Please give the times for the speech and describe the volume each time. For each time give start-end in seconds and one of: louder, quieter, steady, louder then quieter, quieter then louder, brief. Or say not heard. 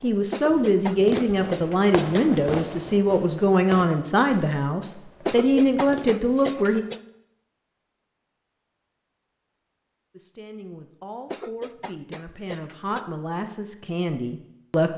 0.0-6.8 steady
10.1-14.9 louder.